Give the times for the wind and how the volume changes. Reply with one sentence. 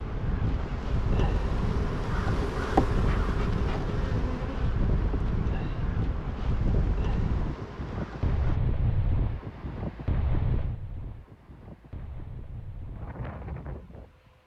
You can hear the wind from 0.0 to 14.4 s, getting quieter.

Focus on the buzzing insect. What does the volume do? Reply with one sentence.
The loudness of the buzzing insect goes up, then down.